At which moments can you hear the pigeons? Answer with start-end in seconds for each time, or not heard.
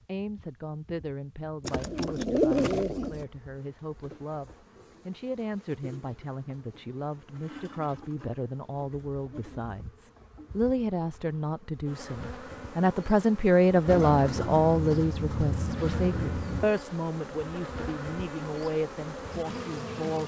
1.6-3.2, 13.8-16.7.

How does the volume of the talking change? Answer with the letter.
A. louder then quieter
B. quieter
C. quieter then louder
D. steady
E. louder
A.